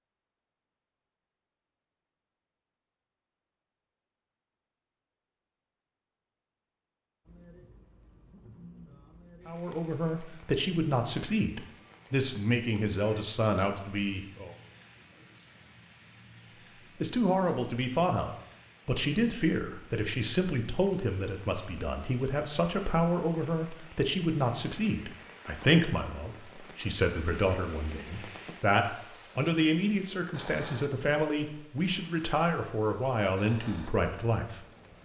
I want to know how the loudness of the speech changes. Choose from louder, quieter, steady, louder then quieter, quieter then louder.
steady.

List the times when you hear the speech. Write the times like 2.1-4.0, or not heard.
9.4-14.6, 17.0-34.6.